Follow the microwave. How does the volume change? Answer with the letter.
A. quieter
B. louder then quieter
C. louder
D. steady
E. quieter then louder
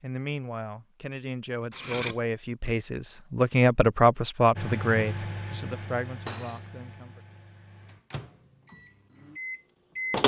E.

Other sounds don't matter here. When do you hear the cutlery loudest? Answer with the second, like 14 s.
2 s.